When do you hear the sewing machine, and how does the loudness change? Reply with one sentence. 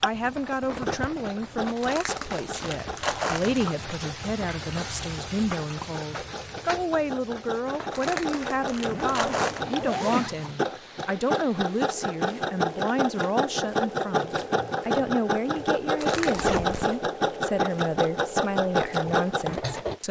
You can hear the sewing machine from 0.0 to 20.0 s, getting louder.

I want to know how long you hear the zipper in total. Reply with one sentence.
You can hear the zipper for 4 seconds altogether.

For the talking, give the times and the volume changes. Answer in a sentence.
You can hear the talking from 0.0 to 20.0 s, at a steady volume.